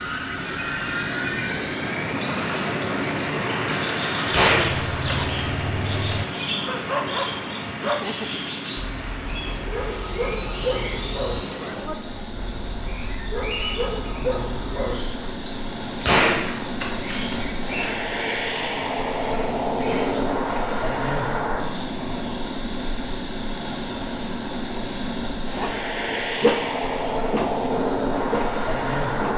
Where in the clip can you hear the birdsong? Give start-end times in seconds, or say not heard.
0.0-20.2.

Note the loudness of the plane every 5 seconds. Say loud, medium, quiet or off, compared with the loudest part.
loud, medium, medium, loud, loud, loud.